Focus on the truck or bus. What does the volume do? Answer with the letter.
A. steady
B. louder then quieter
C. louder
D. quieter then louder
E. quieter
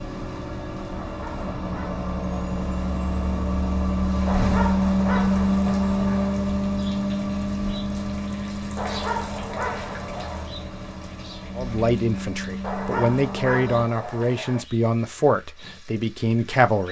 B.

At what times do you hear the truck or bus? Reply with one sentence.
You can hear the truck or bus from 0.0 to 13.7 s.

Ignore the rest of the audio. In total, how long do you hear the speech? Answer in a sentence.
The speech can be heard for 5 seconds in total.